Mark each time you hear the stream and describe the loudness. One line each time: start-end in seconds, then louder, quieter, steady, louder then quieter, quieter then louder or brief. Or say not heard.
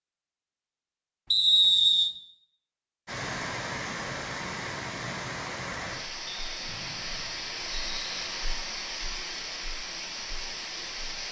3.0-11.2 steady.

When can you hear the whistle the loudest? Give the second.
2 s.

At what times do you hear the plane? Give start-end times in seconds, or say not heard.
not heard.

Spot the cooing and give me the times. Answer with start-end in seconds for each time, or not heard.
not heard.